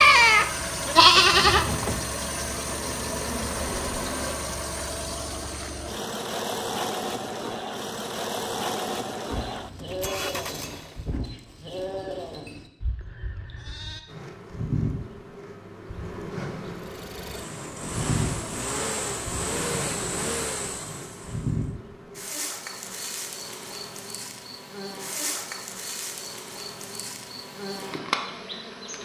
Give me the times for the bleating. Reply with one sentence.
The bleating can be heard from 0.0 to 2.0 s and from 9.3 to 14.0 s.